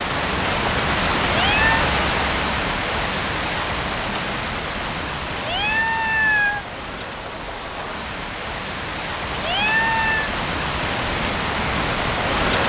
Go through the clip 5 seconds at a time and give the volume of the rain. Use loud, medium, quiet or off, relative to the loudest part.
loud, medium, loud.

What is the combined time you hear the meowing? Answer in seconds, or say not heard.
3 s.